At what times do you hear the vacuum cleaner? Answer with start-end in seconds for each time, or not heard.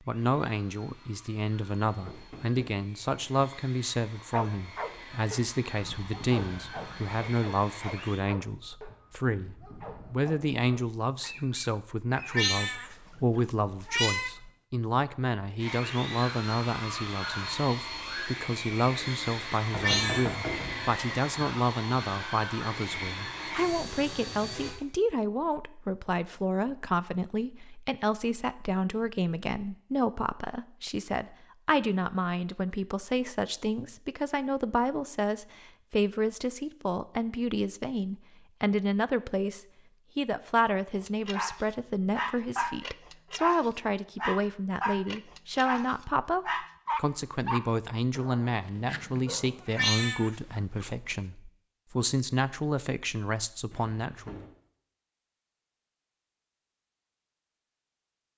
0.0-8.2, 15.6-24.8.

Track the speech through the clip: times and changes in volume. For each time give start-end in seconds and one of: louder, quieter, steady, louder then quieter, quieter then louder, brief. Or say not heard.
0.0-54.4 steady.